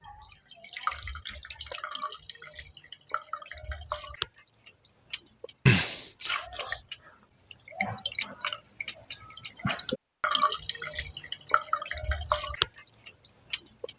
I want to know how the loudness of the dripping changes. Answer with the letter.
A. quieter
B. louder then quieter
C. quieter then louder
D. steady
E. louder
E.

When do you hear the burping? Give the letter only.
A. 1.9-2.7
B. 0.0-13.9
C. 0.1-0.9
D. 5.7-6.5
D.